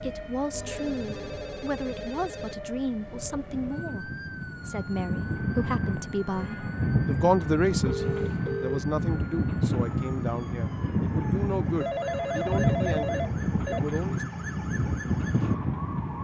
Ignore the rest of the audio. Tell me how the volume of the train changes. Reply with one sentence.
The volume of the train goes up.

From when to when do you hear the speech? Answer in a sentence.
The speech can be heard from 0.0 to 14.2 s.